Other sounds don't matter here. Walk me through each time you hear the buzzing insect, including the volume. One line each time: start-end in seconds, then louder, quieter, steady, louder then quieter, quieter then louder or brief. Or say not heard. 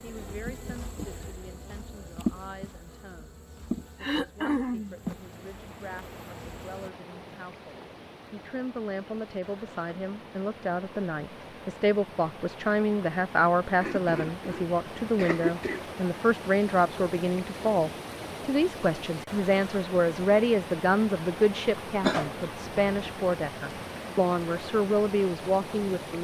0.0-6.9 louder then quieter.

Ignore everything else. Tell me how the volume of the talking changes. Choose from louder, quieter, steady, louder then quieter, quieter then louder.
louder.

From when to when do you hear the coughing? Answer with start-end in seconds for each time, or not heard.
4.0-5.0, 13.8-15.8, 22.0-22.7.